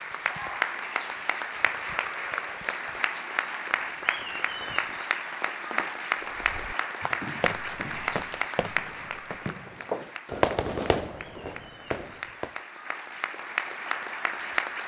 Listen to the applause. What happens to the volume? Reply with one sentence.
The volume of the applause goes down, then up.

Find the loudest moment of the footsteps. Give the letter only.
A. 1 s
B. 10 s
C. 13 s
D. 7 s
B.